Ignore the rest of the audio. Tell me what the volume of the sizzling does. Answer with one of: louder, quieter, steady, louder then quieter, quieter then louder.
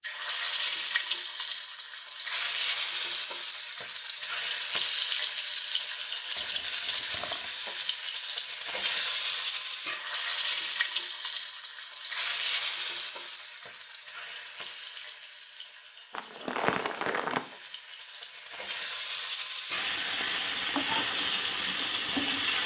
quieter then louder.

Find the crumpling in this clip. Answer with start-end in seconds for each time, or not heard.
6.3-7.5, 16.1-17.4.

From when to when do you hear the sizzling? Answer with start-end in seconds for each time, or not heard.
0.0-22.6.